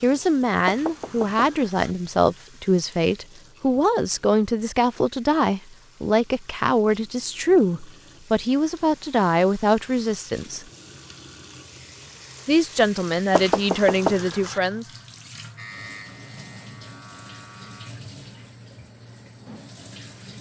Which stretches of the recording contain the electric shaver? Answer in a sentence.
The electric shaver can be heard from 15.6 to 17.9 s.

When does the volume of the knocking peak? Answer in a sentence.
The volume of the knocking peaks at 14 seconds.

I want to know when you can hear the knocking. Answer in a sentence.
The knocking can be heard from 0.7 to 1.9 s and from 13.3 to 14.6 s.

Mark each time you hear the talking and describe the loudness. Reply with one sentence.
You can hear the talking from 0.0 to 10.7 s, at a steady volume; and briefly from 12.4 to 14.8 s.